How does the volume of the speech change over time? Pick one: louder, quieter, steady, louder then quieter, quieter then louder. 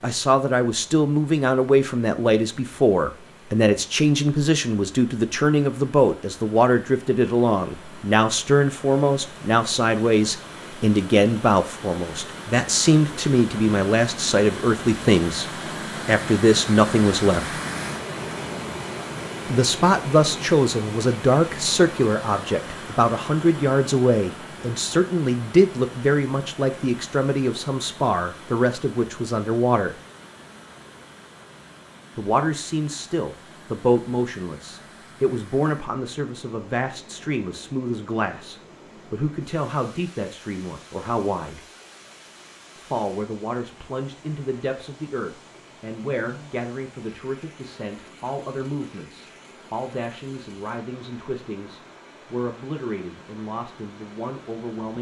quieter.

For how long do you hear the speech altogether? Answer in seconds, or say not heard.
50 s.